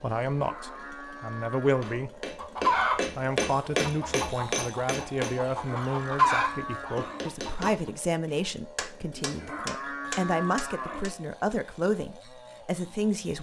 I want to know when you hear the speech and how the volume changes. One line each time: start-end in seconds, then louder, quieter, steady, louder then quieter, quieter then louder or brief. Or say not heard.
0.0-2.2 brief
3.0-13.3 steady.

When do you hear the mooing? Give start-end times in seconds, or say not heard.
0.3-2.0, 5.5-7.3, 9.1-11.1.